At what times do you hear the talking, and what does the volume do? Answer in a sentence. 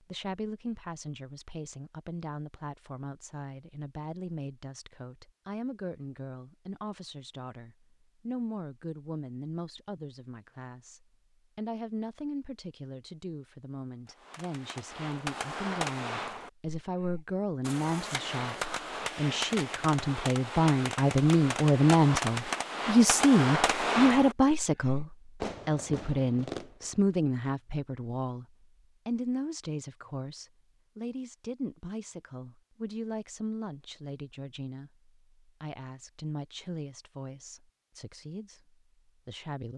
You can hear the talking from 0.0 to 39.7 s, getting louder then quieter.